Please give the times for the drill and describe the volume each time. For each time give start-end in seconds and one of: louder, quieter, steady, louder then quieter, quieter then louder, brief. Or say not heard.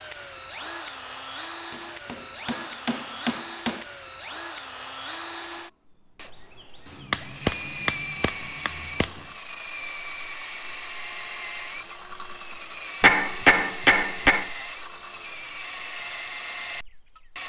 0.0-17.4 steady.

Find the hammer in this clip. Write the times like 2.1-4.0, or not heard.
1.7-3.9, 6.8-9.2, 13.0-14.5.